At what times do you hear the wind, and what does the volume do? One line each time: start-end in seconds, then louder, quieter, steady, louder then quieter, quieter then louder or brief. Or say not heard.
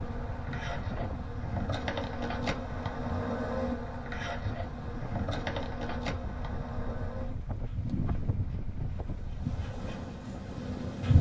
0.0-11.1 steady.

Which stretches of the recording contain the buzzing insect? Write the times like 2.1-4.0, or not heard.
0.0-11.1.